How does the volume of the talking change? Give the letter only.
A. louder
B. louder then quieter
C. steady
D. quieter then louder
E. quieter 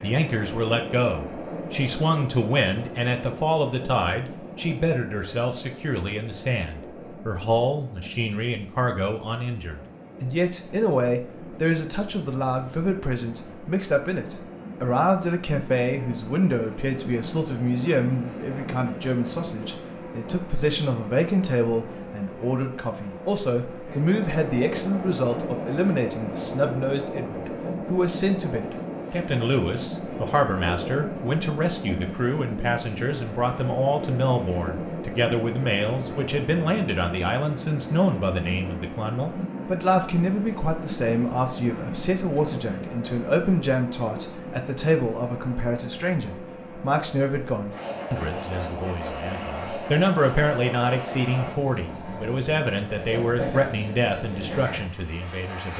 C.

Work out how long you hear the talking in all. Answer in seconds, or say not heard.
56 s.